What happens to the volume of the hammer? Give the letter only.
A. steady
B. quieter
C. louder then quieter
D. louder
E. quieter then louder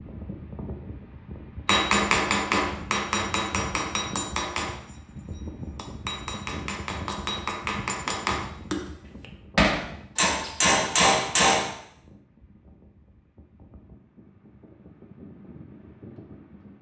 E.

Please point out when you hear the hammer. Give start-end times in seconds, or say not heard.
1.6-11.7.